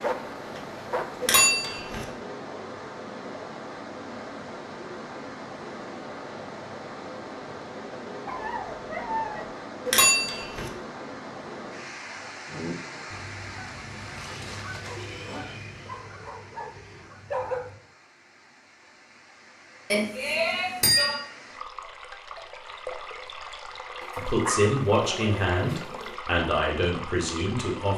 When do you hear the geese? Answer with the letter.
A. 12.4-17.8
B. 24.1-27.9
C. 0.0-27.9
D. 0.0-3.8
A.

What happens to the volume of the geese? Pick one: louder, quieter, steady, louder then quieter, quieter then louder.
louder then quieter.